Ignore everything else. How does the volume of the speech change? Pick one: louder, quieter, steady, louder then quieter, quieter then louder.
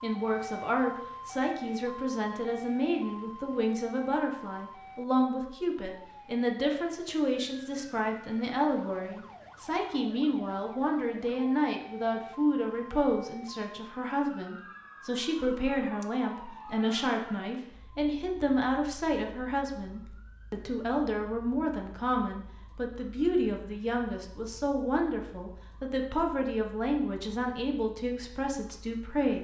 steady.